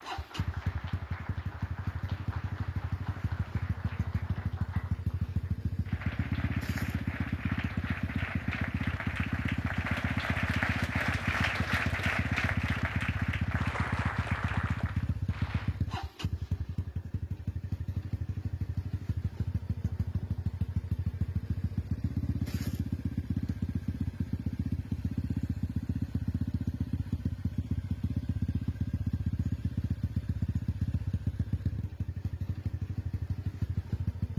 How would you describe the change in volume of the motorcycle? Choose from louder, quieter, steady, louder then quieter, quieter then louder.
steady.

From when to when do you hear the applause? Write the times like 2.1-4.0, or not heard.
0.0-15.8.